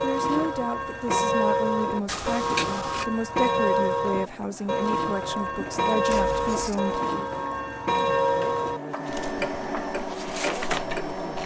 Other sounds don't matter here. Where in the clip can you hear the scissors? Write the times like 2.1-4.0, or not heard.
2.0-3.0, 6.1-6.8.